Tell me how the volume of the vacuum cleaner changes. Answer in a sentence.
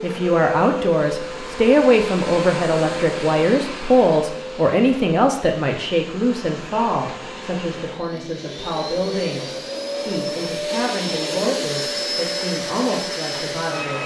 The volume of the vacuum cleaner goes down, then up.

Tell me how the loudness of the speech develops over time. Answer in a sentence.
The loudness of the speech goes down.